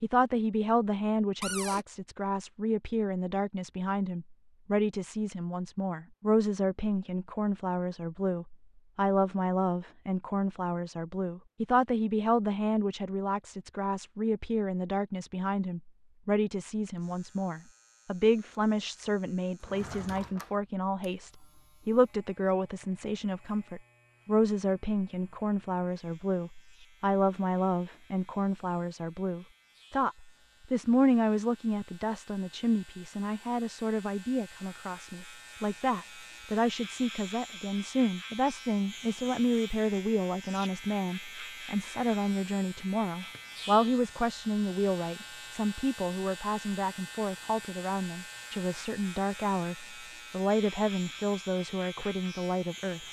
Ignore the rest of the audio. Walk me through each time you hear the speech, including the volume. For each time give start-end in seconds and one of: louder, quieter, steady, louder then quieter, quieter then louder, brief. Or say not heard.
0.0-53.0 steady.